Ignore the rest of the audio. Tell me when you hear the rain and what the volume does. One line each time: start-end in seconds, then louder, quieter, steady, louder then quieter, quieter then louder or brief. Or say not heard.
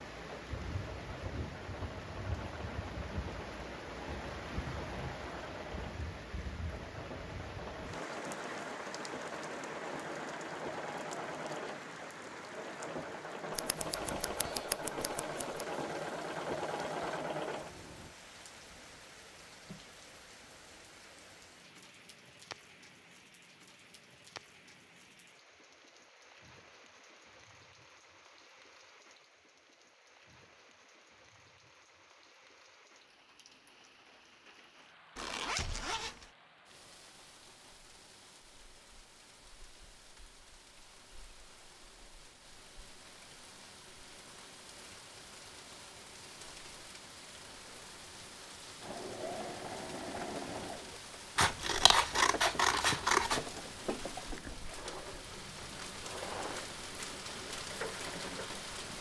0.0-58.9 quieter then louder.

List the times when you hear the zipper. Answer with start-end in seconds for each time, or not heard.
35.1-36.3.